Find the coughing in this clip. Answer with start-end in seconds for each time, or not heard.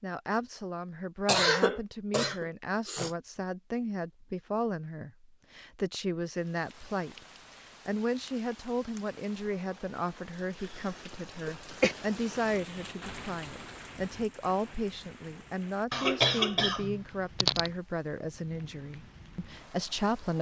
1.2-3.1, 10.6-11.9, 15.9-17.7.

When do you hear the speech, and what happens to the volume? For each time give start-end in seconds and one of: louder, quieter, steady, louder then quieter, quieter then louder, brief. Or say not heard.
0.0-7.2 steady
7.8-20.3 steady.